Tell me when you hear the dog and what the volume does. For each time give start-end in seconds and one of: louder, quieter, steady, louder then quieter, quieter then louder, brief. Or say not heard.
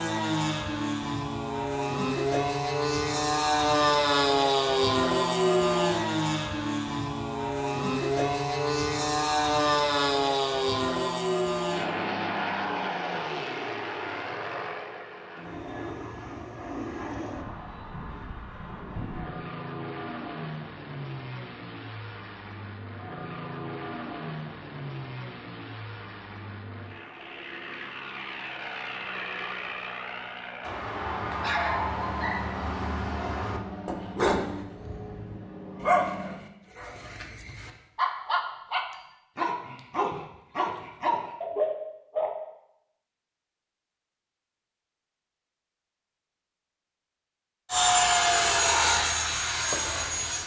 30.6-42.4 steady.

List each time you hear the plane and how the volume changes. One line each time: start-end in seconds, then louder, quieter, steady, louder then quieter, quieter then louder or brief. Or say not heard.
0.0-36.5 quieter
47.6-50.4 brief.